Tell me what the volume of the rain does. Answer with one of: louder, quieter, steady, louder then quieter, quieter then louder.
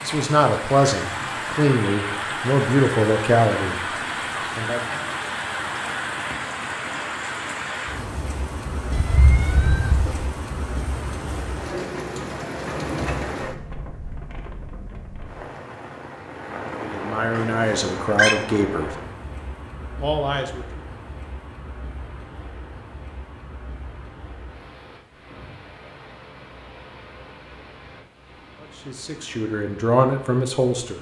quieter.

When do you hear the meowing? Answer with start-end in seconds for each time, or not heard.
8.9-10.3, 17.3-18.4.